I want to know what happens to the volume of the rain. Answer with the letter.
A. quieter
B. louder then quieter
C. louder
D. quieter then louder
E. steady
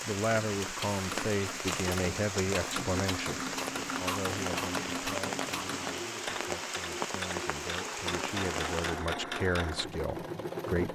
E.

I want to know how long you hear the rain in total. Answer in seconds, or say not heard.
9 s.